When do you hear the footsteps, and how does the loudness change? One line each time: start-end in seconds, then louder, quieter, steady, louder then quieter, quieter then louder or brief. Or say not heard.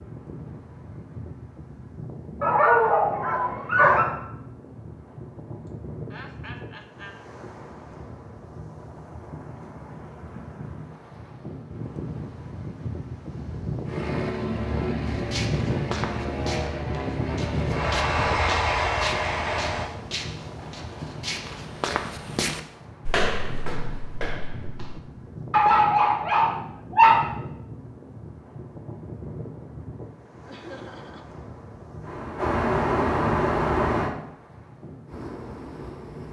15.1-25.7 louder then quieter.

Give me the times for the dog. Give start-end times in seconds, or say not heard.
2.4-4.0, 25.5-27.2.